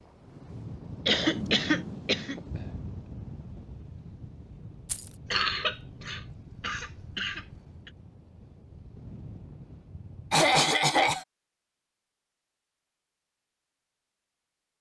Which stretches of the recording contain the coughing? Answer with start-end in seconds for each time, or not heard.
1.1-2.4, 5.3-7.4, 10.3-11.2.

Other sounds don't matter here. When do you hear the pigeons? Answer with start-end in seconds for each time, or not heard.
not heard.